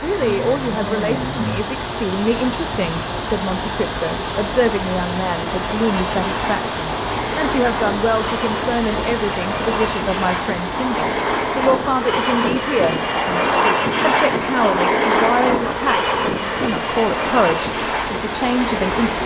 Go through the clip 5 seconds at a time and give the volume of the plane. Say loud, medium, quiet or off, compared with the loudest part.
off, medium, loud, loud.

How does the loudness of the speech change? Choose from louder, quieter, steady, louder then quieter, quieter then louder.
steady.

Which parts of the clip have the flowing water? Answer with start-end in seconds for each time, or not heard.
0.0-19.2.